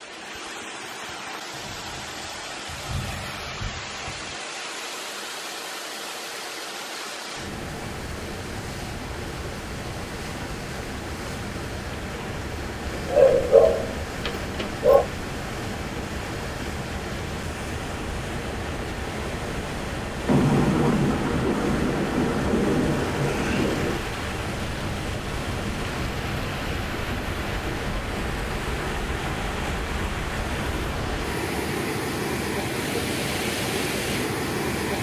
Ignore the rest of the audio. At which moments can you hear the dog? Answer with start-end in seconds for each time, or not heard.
12.8-15.1.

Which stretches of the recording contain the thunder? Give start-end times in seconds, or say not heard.
1.5-4.3, 20.2-24.0.